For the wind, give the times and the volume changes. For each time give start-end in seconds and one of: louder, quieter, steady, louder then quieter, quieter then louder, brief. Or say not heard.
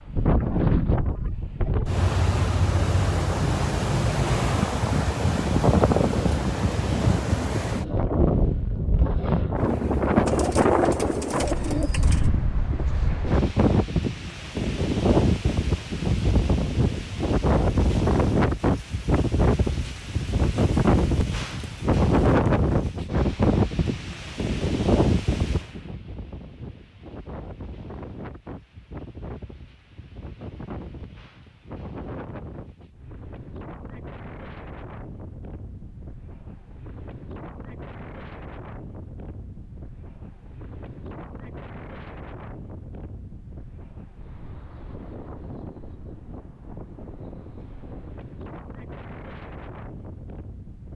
0.0-50.9 quieter.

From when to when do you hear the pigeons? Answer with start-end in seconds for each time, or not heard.
10.2-12.3.